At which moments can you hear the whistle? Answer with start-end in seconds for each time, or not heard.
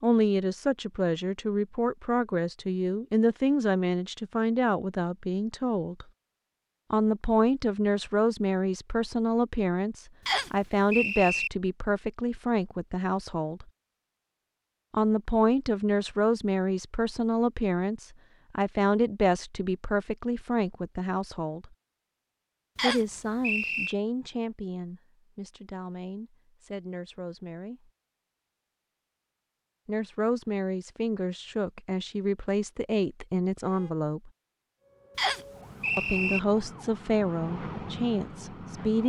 10.2-11.5, 22.8-23.9, 35.1-36.4.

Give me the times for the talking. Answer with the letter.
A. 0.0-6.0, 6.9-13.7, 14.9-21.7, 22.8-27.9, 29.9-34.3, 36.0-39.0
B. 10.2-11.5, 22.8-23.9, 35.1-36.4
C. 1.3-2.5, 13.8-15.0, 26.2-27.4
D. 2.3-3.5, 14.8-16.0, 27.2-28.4
A.